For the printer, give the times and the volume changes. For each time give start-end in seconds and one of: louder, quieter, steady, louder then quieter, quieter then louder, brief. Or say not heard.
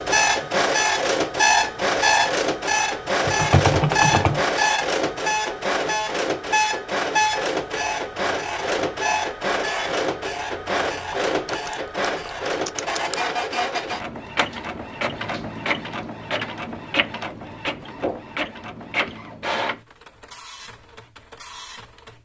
0.0-22.1 quieter.